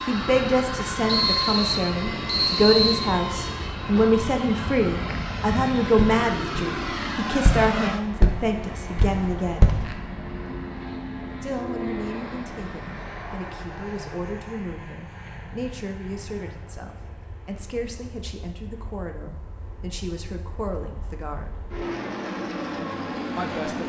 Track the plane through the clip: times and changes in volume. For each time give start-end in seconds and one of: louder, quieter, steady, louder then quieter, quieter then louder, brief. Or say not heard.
0.0-23.8 quieter then louder.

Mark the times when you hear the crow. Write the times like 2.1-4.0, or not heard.
not heard.